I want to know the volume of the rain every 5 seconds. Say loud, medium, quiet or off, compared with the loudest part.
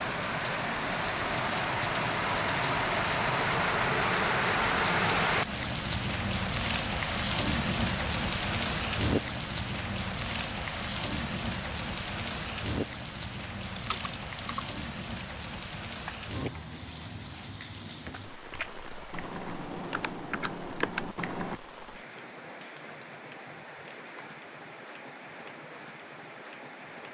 loud, loud, medium, quiet, quiet, quiet.